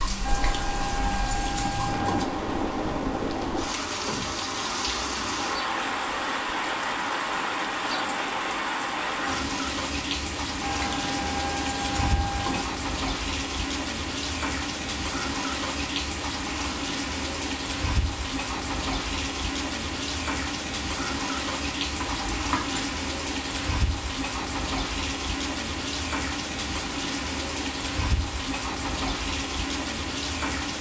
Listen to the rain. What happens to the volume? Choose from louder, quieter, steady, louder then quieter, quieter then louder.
steady.